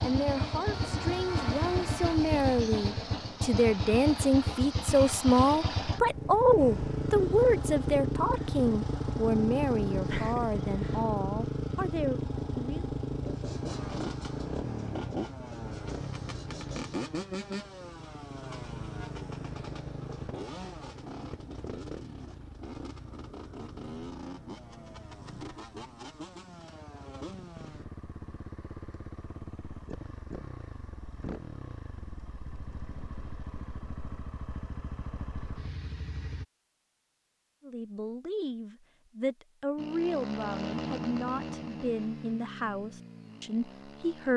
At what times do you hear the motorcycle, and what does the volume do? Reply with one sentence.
You can hear the motorcycle from 0.0 to 36.5 s, getting quieter; and from 39.8 to 44.3 s, getting quieter.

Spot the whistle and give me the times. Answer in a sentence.
The whistle can't be heard in this clip.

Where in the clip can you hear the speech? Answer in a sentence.
You can hear the speech from 0.0 to 12.8 s and from 37.6 to 44.3 s.